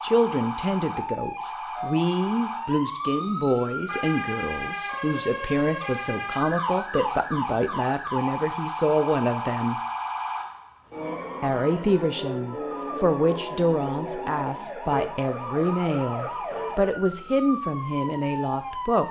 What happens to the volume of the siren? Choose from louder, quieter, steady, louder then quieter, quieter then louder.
steady.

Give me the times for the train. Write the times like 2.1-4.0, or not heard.
not heard.